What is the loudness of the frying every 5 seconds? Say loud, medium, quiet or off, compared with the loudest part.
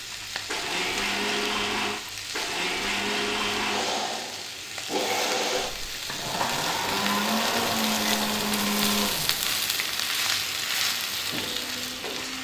medium, loud, loud.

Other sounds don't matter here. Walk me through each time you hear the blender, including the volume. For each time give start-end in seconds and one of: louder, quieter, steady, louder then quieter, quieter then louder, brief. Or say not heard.
0.0-12.3 quieter.